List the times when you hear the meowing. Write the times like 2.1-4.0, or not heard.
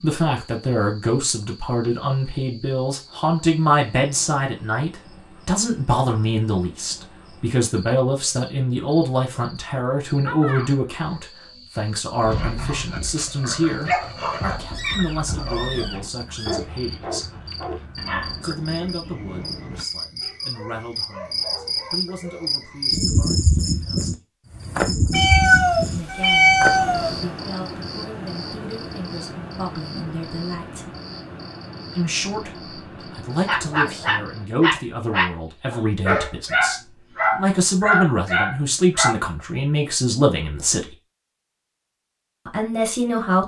14.7-16.6, 25.1-27.1.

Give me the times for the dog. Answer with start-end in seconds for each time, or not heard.
12.2-22.9, 33.5-39.1.